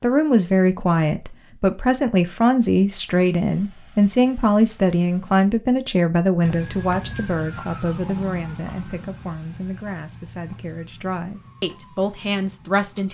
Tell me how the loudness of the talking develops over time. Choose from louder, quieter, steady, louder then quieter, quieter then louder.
quieter.